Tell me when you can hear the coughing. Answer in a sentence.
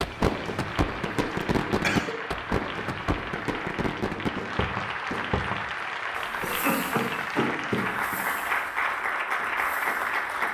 The coughing can be heard from 1.4 to 2.1 s and from 6.4 to 8.2 s.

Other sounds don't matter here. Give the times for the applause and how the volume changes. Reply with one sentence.
The applause can be heard from 0.0 to 10.4 s, getting louder.